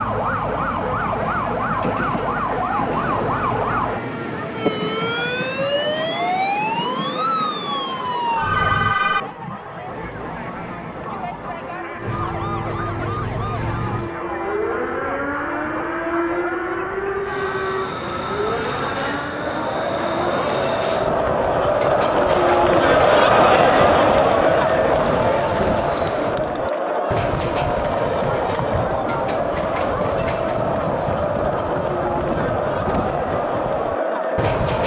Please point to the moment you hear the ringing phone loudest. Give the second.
9 s.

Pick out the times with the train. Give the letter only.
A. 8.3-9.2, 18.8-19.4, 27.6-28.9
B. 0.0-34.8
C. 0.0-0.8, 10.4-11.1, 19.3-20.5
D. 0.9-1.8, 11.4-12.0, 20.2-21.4
B.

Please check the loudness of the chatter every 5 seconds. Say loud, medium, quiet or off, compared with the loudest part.
quiet, quiet, quiet, quiet, loud, medium, medium.